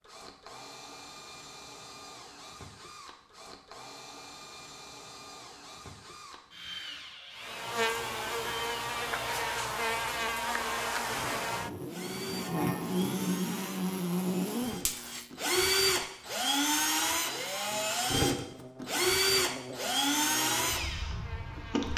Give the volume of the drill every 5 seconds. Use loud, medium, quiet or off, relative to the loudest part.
quiet, quiet, quiet, loud, loud.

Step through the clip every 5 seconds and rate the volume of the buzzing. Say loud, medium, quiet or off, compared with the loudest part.
off, loud, loud, quiet, quiet.